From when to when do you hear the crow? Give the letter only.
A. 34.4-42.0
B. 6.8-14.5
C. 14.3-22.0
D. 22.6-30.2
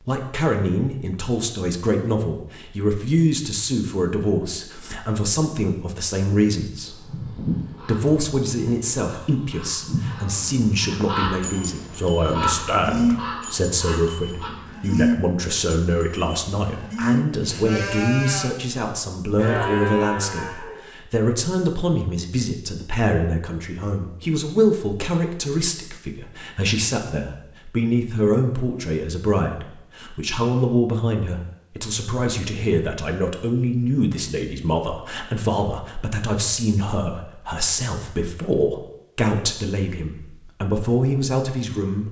B.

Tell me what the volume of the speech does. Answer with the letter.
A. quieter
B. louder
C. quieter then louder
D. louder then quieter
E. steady
E.